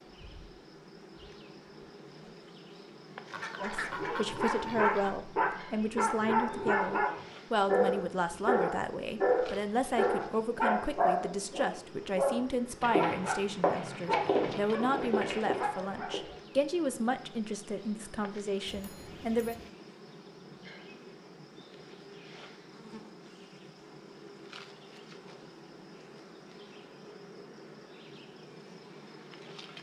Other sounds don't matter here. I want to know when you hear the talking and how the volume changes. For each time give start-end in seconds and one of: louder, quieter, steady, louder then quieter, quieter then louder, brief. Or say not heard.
3.6-19.6 steady.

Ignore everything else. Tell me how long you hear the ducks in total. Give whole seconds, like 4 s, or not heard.
2 s.